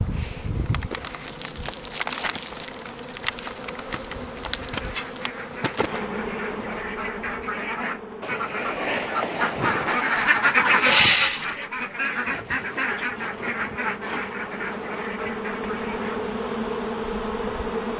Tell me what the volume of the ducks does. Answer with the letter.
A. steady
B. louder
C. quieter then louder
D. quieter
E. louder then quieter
E.